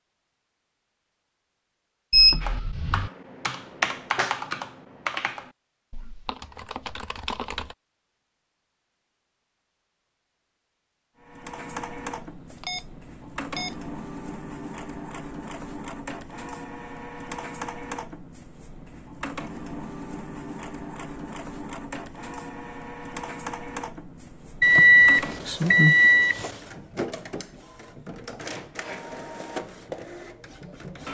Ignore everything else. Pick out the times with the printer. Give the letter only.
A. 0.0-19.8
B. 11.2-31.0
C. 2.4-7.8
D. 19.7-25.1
B.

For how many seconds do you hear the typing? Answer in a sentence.
You can hear the typing for 5 seconds altogether.